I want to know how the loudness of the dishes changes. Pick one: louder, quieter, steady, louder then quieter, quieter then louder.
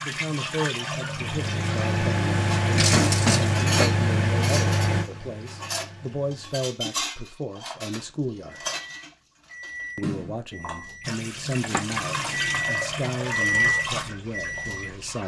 quieter.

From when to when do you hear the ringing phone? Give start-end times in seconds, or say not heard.
2.9-3.9.